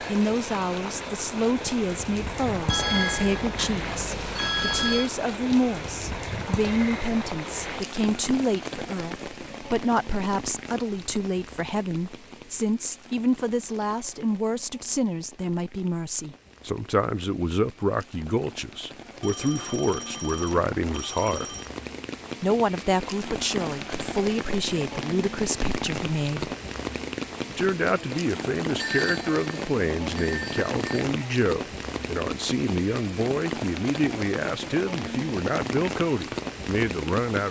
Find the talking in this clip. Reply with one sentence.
You can hear the talking from 0.1 to 21.4 s, from 22.4 to 26.5 s and from 27.4 to 37.4 s.